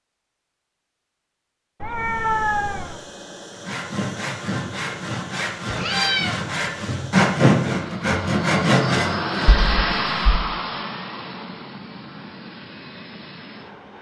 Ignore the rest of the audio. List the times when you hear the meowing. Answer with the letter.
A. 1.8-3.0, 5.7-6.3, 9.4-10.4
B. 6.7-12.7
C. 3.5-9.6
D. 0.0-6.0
A.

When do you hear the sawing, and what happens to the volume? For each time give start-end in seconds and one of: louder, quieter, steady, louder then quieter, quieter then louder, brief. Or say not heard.
3.5-9.6 louder.